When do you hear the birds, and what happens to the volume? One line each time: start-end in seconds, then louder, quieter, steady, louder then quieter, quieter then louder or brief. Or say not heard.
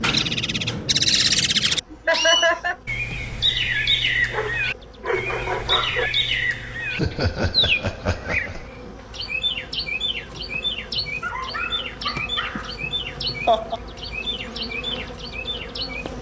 0.0-16.1 quieter.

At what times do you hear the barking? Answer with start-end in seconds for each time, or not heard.
4.3-6.1, 11.2-12.8.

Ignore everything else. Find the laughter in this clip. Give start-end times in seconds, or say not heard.
1.9-2.8, 7.0-8.7, 12.6-13.8.